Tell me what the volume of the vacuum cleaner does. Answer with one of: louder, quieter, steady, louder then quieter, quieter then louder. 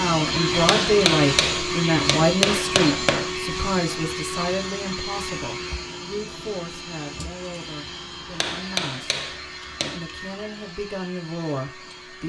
quieter.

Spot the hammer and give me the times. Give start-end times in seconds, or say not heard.
0.6-3.3, 8.3-10.0.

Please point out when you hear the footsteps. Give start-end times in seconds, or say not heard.
not heard.